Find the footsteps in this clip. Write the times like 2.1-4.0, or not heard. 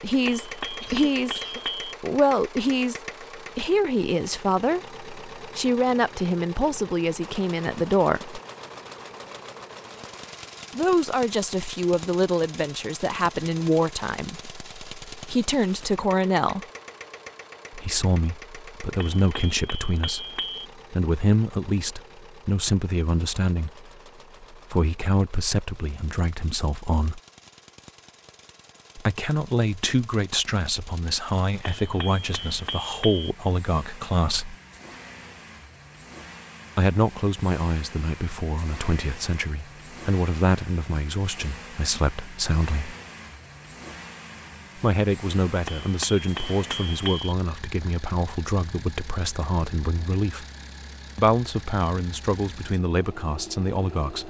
not heard.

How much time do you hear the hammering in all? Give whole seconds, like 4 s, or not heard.
7 s.